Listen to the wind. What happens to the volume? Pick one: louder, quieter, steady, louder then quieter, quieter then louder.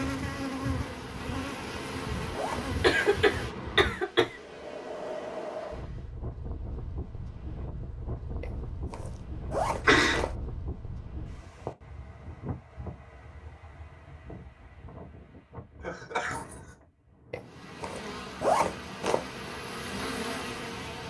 quieter.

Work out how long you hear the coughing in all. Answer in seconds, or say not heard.
3 s.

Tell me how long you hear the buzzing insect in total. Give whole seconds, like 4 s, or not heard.
10 s.